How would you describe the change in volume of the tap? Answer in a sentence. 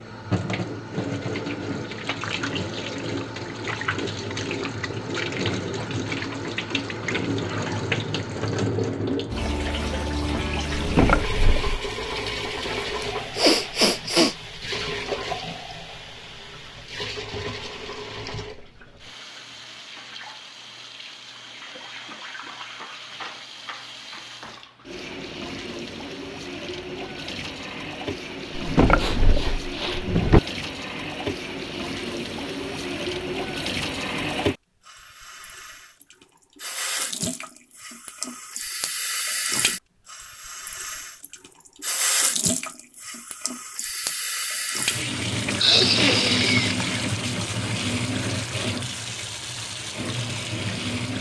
The volume of the tap goes down, then up.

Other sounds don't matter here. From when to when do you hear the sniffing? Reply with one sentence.
The sniffing can be heard from 13.0 to 14.3 s, from 28.9 to 30.1 s and from 45.6 to 46.8 s.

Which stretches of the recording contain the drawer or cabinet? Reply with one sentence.
The drawer or cabinet can be heard from 10.8 to 11.9 s and from 28.6 to 30.4 s.